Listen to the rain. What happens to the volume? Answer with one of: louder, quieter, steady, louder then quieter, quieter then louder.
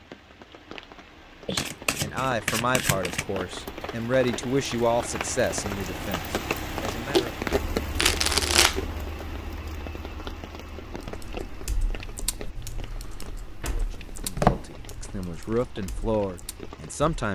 louder then quieter.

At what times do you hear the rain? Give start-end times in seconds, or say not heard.
0.0-17.3.